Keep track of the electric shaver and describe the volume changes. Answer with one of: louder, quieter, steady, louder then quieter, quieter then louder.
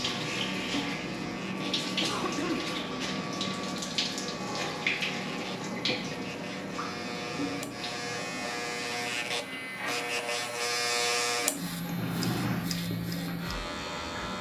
louder.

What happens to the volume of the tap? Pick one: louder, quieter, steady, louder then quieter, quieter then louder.
quieter.